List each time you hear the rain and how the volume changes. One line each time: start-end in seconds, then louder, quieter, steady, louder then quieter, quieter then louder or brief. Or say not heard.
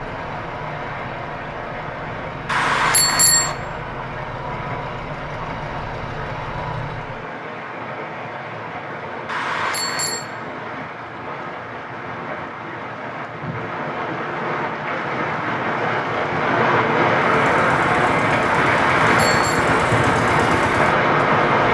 0.0-21.6 louder.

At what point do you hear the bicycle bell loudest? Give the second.
3 s.